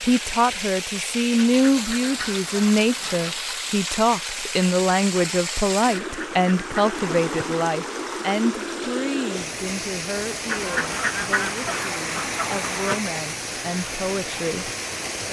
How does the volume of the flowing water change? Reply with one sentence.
The loudness of the flowing water stays about the same.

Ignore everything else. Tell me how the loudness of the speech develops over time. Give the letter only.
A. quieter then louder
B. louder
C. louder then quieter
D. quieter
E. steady
D.